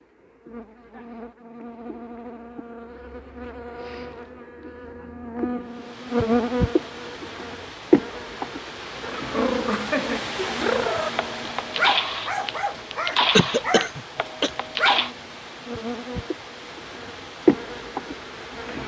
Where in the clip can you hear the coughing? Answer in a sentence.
You can hear the coughing from 13.3 to 14.5 s.